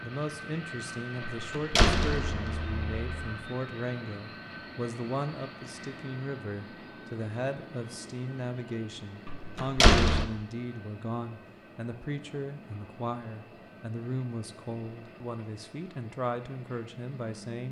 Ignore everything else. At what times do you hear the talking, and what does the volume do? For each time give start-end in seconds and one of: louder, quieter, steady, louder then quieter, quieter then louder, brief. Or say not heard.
0.0-17.6 steady.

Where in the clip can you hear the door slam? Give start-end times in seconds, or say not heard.
1.2-3.3, 9.2-10.2.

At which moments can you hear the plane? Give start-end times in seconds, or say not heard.
0.0-17.6.